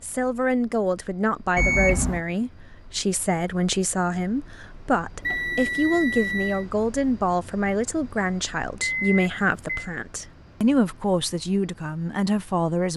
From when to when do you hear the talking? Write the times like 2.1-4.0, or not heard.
0.0-12.9.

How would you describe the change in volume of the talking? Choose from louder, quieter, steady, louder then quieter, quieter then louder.
steady.